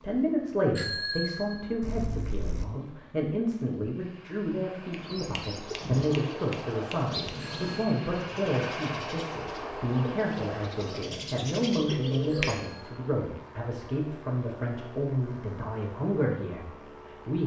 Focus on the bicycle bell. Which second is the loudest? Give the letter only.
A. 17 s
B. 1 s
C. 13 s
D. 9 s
B.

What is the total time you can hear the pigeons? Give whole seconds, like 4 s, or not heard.
8 s.